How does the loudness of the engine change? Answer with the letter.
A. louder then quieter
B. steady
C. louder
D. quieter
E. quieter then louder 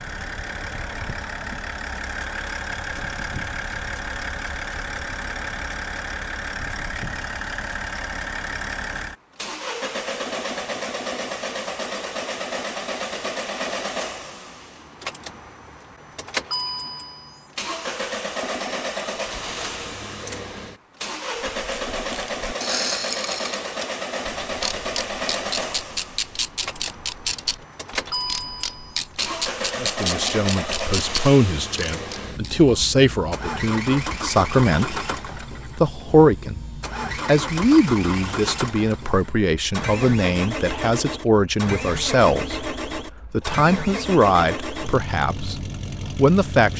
B.